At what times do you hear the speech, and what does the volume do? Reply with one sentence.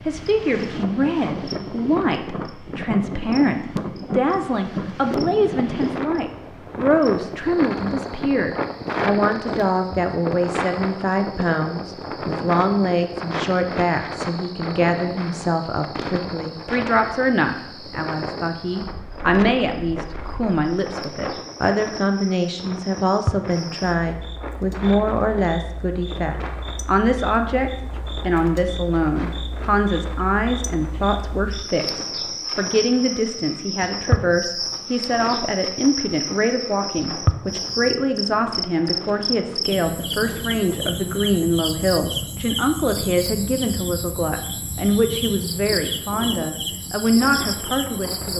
The speech can be heard from 0.1 to 48.3 s, at a steady volume.